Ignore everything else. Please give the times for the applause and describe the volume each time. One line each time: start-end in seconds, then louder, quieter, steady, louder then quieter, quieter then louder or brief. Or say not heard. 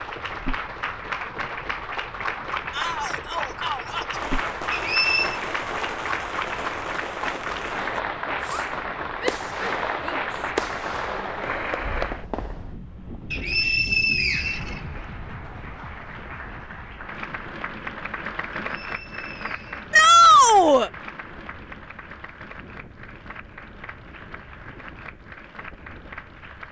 0.0-12.2 steady
14.2-26.6 louder then quieter.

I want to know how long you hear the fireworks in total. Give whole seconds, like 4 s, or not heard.
9 s.